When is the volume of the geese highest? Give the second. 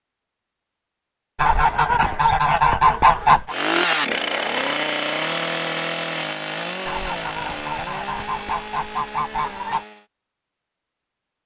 3 s.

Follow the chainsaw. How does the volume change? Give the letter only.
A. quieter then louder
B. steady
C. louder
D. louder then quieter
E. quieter
E.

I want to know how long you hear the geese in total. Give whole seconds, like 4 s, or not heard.
5 s.